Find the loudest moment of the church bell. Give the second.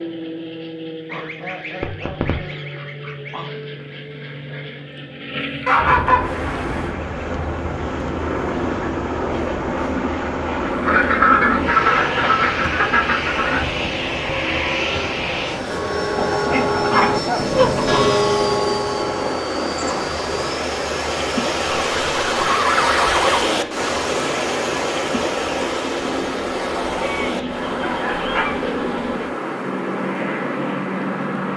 18 s.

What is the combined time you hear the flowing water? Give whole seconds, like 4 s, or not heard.
25 s.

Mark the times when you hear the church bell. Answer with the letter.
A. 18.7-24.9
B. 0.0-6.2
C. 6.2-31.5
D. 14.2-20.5
D.